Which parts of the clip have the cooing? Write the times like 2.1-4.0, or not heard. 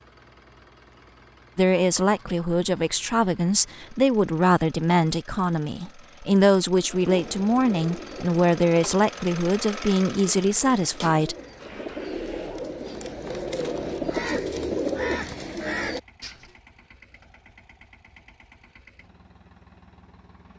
6.8-16.5.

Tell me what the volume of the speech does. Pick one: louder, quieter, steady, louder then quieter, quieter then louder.
steady.